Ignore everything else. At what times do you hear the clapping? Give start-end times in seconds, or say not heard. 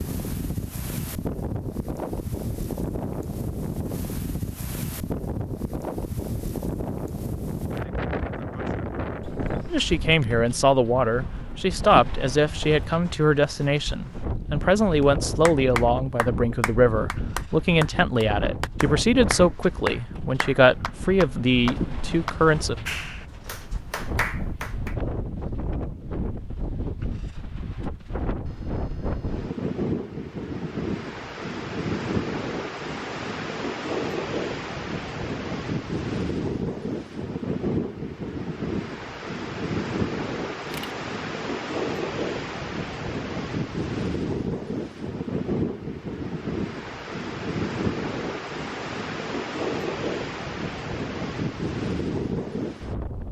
15.0-24.9.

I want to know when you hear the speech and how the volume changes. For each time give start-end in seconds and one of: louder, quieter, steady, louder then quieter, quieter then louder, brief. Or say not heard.
9.7-22.8 steady.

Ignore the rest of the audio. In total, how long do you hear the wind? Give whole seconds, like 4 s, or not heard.
53 s.